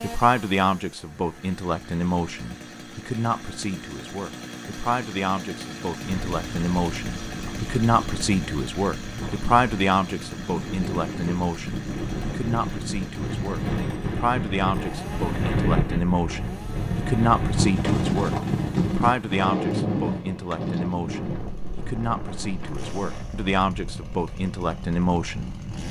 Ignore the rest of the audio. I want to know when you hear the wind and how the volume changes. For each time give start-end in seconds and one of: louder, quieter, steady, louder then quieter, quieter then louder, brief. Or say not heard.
6.0-25.8 louder then quieter.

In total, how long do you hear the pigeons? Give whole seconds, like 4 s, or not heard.
not heard.